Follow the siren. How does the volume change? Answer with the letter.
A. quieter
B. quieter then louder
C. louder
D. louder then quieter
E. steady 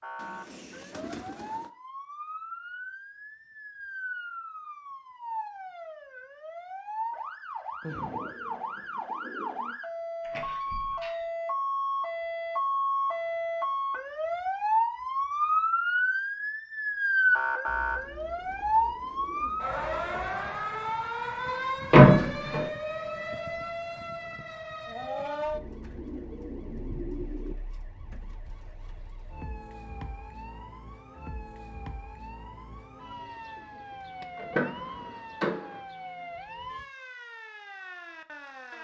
D.